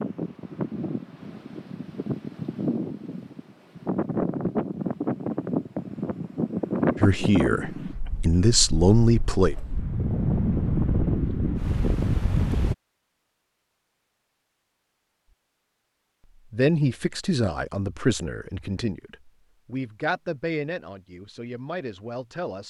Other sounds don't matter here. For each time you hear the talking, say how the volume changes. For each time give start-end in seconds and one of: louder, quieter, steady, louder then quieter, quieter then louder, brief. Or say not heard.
7.0-9.6 brief
16.5-22.6 quieter.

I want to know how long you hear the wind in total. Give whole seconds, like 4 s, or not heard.
13 s.